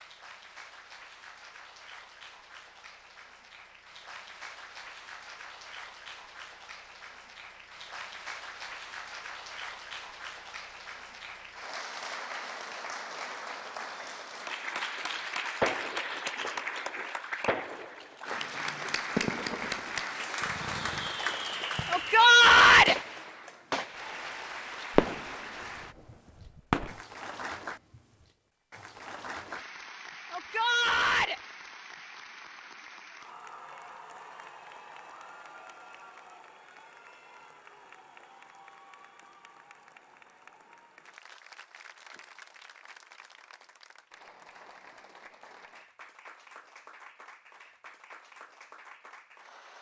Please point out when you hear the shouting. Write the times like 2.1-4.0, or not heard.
21.9-22.9, 30.3-31.4.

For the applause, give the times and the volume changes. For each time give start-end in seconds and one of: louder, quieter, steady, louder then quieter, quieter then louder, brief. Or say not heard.
0.0-49.7 louder then quieter.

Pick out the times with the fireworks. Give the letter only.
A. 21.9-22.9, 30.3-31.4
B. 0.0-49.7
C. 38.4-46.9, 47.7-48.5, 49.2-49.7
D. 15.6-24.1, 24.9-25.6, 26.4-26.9
D.